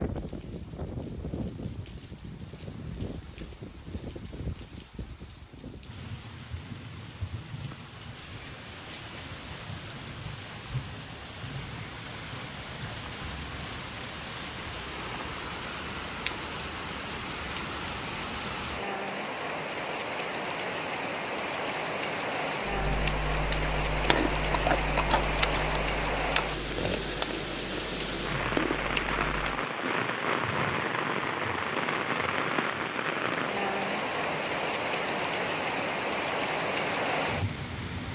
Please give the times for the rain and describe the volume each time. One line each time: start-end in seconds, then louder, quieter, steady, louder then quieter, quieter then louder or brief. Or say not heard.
0.0-38.1 louder.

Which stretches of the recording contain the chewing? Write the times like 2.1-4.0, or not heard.
22.6-29.6.